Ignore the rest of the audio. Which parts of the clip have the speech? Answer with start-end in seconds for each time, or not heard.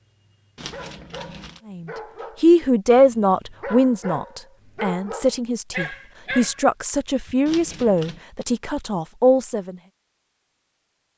1.7-9.8.